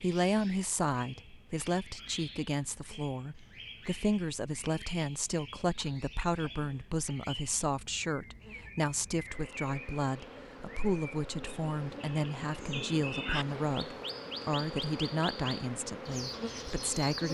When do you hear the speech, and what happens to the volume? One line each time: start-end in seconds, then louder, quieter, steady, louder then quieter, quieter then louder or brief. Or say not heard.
0.0-17.2 steady.